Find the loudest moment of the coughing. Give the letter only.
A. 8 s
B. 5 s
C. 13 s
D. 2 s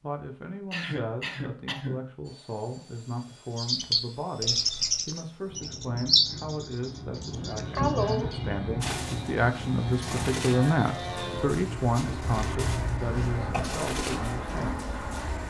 A.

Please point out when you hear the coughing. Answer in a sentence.
The coughing can be heard from 0.7 to 2.1 s, from 7.2 to 8.6 s and from 12.2 to 13.8 s.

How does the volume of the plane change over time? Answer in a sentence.
The volume of the plane goes up.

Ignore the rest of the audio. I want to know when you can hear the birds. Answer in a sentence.
You can hear the birds from 3.5 to 15.4 s.